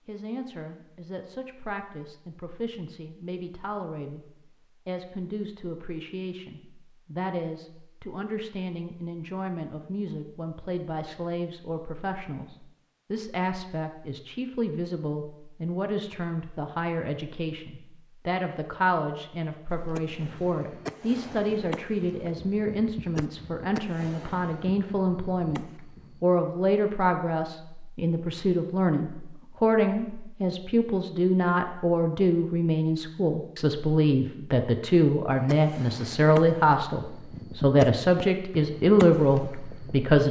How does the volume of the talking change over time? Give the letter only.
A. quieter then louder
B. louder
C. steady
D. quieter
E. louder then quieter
B.